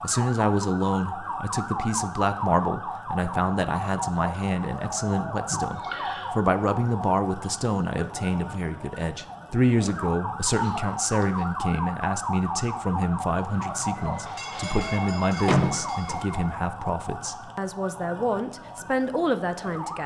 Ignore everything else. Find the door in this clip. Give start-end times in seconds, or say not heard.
15.4-16.2.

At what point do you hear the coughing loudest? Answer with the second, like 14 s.
11 s.